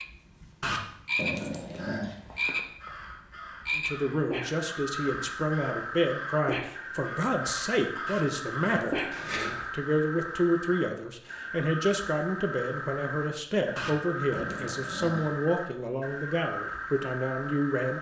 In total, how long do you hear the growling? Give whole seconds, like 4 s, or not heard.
5 s.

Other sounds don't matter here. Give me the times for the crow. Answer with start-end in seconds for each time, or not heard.
1.7-9.7.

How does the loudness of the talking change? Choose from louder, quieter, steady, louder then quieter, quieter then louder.
steady.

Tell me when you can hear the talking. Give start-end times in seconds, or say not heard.
3.8-17.9.